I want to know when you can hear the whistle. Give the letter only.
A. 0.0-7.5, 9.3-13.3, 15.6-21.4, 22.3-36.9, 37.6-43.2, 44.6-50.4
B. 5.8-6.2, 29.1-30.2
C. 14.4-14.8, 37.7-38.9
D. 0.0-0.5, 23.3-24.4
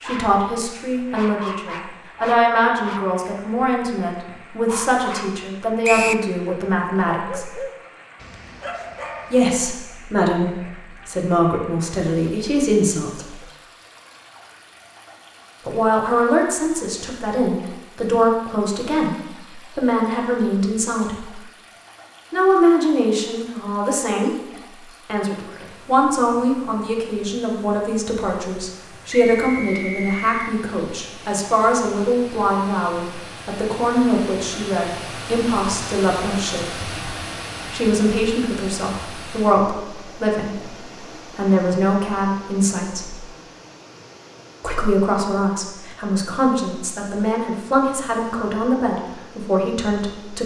B.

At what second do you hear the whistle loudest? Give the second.
6 s.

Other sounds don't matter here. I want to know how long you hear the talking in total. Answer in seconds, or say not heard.
43 s.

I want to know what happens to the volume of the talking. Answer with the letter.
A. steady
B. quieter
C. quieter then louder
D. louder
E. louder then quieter
A.